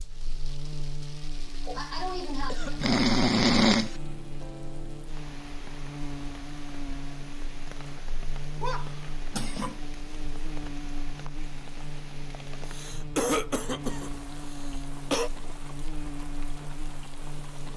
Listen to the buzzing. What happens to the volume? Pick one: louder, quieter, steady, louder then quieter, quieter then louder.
steady.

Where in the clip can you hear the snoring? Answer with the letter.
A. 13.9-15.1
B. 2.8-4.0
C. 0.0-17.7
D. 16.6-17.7
B.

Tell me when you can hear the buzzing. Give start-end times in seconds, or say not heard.
0.0-17.7.